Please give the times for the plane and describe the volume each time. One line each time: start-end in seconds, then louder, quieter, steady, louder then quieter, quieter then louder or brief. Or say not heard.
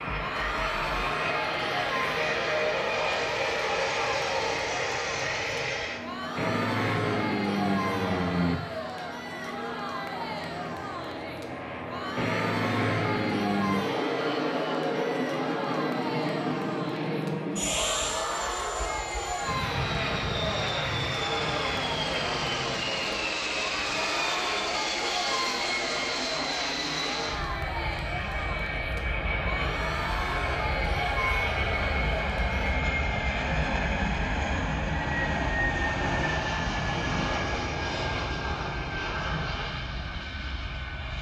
0.0-41.1 steady.